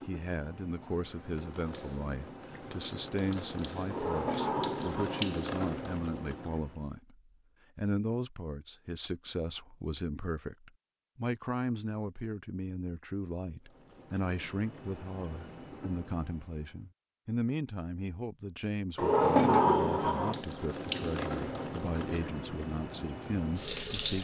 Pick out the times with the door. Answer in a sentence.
The door can be heard from 3.9 to 5.3 s and from 18.9 to 20.4 s.